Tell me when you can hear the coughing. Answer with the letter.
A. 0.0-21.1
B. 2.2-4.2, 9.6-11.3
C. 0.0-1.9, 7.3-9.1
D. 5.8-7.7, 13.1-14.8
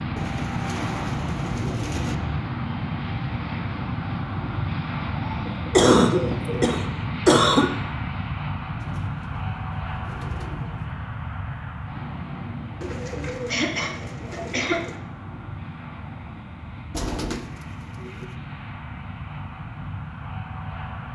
D.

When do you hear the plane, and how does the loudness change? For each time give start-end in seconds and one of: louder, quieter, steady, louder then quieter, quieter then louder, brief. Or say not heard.
0.0-21.1 quieter.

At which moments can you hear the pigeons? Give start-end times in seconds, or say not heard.
0.1-2.1, 5.2-6.8, 8.8-10.9, 12.8-15.0, 16.9-18.3.